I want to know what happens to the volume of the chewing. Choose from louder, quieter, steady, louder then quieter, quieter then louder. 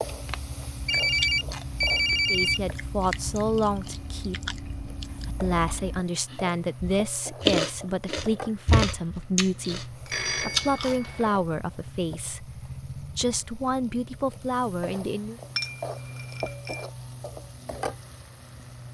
louder.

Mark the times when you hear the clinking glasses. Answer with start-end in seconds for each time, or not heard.
15.6-16.9.